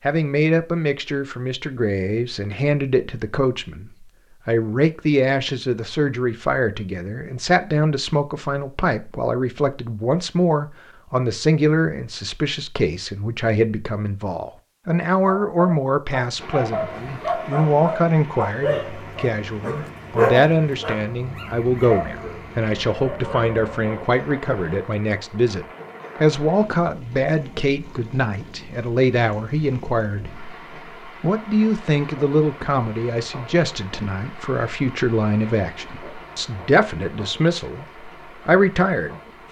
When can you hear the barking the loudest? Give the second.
20 s.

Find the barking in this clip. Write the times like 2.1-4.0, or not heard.
15.2-24.1.